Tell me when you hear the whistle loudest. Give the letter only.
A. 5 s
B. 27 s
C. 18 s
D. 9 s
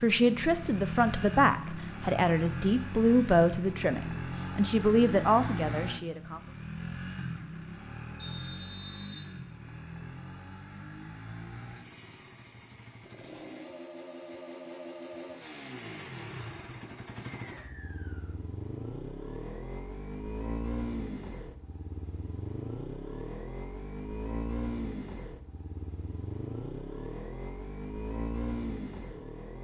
D.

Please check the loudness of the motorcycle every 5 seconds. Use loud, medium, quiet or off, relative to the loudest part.
loud, loud, medium, medium, loud, loud.